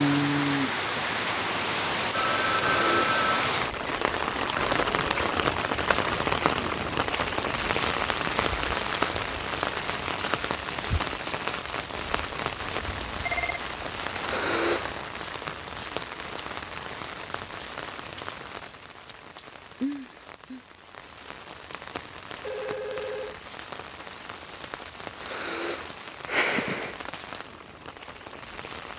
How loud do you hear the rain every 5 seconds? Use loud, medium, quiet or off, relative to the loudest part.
loud, loud, medium, medium, quiet, quiet.